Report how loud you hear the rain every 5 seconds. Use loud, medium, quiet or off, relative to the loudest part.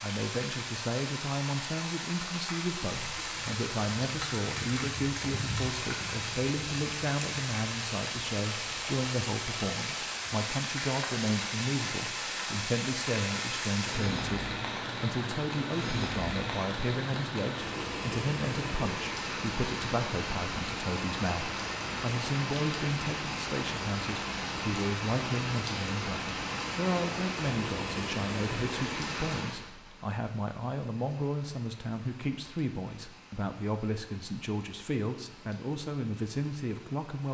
loud, loud, loud, loud, loud, loud, quiet, quiet.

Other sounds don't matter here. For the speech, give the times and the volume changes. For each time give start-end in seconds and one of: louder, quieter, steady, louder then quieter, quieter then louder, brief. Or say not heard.
0.0-37.3 steady.